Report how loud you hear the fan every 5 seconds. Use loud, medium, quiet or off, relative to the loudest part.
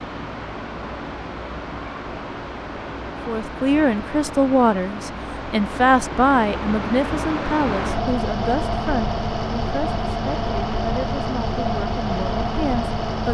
medium, loud, loud.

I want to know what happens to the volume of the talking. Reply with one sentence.
The volume of the talking goes down.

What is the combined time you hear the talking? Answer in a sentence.
The talking can be heard for 10 seconds in total.